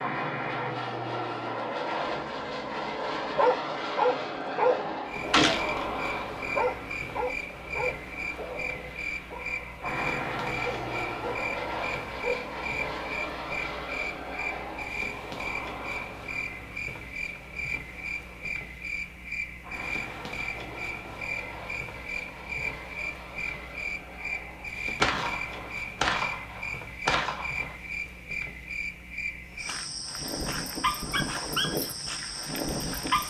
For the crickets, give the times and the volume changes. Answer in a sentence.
The crickets can be heard from 5.0 to 33.2 s, at a steady volume.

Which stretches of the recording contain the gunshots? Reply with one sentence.
The gunshots can be heard from 5.3 to 5.9 s and from 25.0 to 27.8 s.